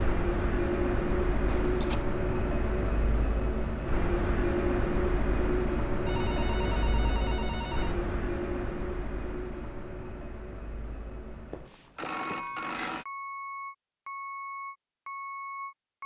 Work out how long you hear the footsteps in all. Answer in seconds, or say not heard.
not heard.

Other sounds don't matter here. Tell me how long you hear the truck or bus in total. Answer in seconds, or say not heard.
16 s.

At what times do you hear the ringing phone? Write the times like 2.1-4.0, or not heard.
1.4-2.1, 6.0-8.0, 11.5-13.1.